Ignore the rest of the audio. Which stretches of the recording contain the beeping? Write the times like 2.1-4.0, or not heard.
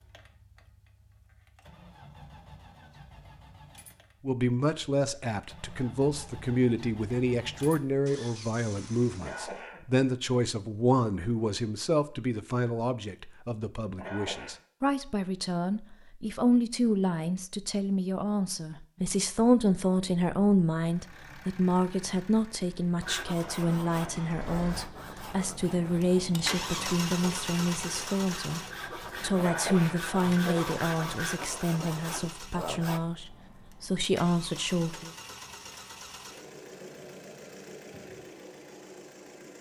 not heard.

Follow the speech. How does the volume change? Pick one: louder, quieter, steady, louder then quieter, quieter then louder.
steady.